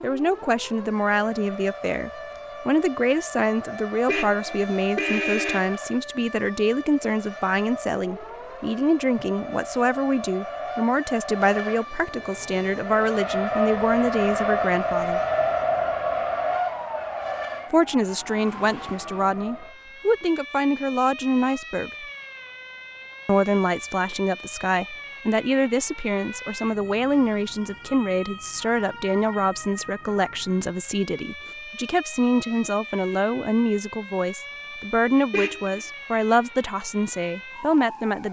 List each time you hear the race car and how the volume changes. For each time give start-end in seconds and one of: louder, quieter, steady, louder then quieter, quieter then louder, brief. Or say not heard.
0.1-19.8 louder.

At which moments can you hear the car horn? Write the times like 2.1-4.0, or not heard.
4.0-5.7, 35.3-35.8.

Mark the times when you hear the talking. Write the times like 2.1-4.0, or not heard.
0.0-15.2, 17.7-22.1, 23.2-38.2.